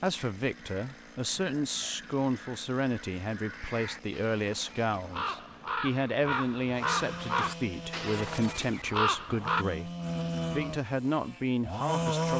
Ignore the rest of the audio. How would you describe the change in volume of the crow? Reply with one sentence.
The volume of the crow goes up.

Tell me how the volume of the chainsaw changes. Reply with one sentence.
The volume of the chainsaw goes up.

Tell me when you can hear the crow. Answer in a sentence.
The crow can be heard from 0.1 to 9.7 s.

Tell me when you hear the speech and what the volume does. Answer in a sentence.
The speech can be heard from 0.0 to 9.9 s, at a steady volume; and briefly from 10.5 to 12.3 s.